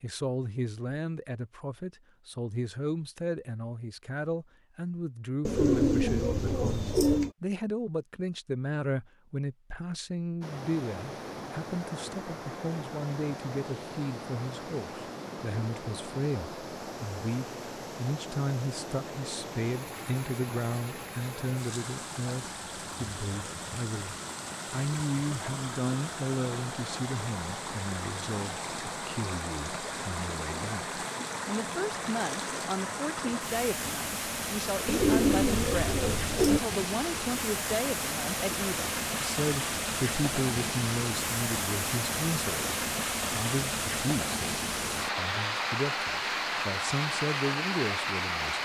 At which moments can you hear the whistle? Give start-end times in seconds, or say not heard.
not heard.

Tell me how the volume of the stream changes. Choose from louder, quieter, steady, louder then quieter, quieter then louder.
louder.